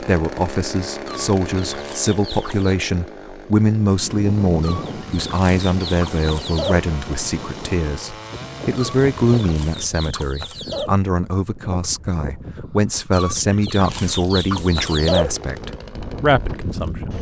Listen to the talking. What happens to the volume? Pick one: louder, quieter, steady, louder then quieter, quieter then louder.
steady.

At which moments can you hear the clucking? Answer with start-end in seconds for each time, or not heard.
1.1-2.8, 4.6-6.8, 8.8-10.9, 13.1-15.3.